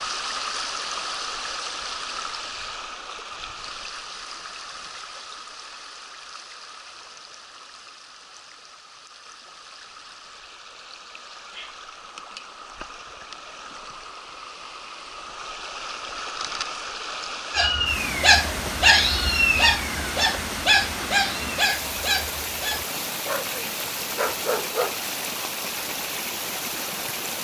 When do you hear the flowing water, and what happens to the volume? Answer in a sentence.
The flowing water can be heard from 0.0 to 27.3 s, getting quieter then louder.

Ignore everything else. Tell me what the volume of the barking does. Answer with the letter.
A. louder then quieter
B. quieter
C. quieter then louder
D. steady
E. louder
B.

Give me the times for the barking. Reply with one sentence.
The barking can be heard from 17.5 to 24.9 s.